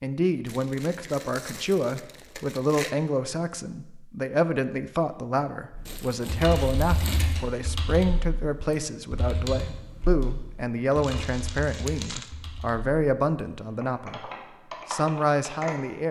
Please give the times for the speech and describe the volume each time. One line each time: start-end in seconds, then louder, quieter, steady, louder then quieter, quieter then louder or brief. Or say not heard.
0.0-16.0 steady.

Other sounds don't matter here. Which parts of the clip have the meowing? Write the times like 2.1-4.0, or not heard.
not heard.